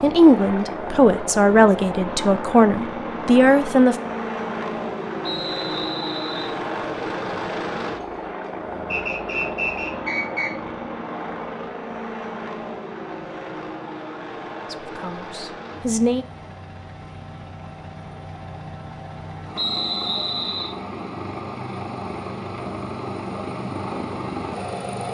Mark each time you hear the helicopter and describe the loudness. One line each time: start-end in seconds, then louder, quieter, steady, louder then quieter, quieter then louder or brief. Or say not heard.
0.0-25.0 quieter then louder.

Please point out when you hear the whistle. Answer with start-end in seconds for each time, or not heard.
5.2-6.5, 8.9-10.5, 19.6-20.8.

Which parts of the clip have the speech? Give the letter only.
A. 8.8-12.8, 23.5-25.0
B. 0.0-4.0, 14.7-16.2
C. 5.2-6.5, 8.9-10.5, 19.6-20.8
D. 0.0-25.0
B.